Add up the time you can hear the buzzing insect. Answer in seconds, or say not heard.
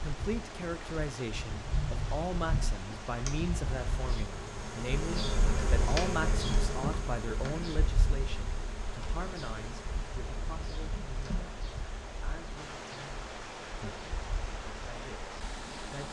16 s.